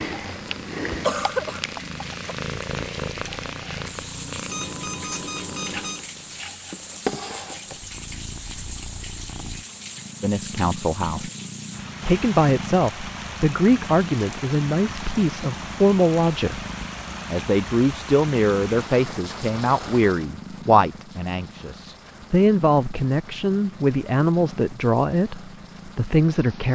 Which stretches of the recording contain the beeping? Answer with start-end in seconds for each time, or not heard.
4.5-6.0.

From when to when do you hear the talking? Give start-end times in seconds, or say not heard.
10.2-11.3, 12.1-16.6, 17.3-26.7.